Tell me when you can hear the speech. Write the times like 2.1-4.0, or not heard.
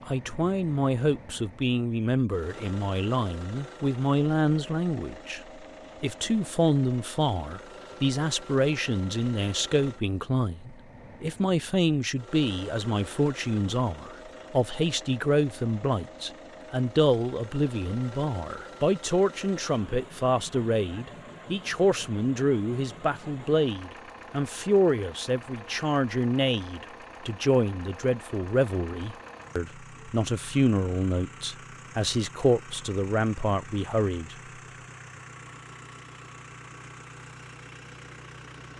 0.1-5.4, 6.0-34.4.